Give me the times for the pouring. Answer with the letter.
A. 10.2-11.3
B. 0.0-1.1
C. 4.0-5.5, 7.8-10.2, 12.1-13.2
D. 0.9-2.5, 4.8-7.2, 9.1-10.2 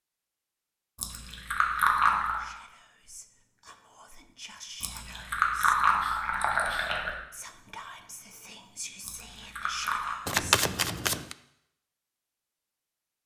D.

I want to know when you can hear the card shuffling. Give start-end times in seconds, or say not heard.
10.2-11.3.